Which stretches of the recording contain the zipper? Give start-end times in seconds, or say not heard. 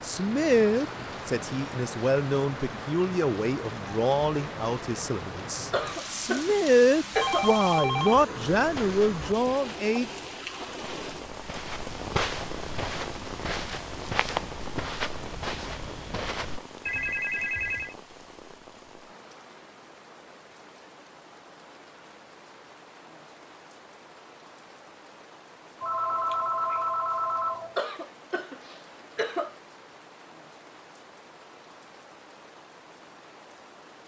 not heard.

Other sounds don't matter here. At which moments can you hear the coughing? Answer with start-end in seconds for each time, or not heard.
5.7-7.5, 27.8-29.6.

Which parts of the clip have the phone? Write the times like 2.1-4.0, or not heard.
7.1-8.2, 16.9-17.9, 25.8-27.8.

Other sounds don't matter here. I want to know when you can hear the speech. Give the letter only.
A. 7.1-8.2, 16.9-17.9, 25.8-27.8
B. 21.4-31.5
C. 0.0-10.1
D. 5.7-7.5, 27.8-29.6
C.